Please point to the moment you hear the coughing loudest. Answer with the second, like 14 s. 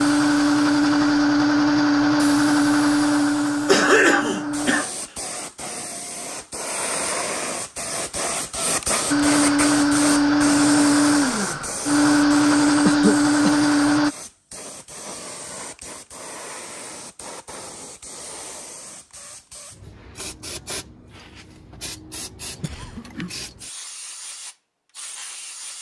4 s.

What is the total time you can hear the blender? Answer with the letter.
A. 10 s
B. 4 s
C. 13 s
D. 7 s
A.